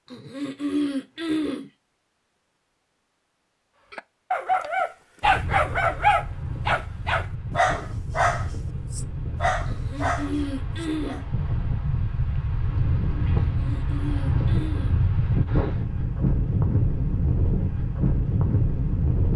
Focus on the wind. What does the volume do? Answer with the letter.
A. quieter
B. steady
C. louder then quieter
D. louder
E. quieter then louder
D.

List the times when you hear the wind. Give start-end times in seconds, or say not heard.
5.2-19.3.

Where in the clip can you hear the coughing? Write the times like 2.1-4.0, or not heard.
0.1-1.6, 9.7-11.2, 13.5-14.9.